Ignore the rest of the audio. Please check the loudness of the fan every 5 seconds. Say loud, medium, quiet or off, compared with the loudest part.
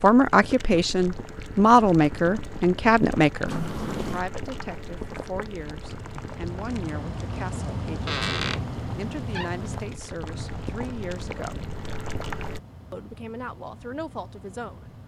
off, loud, medium.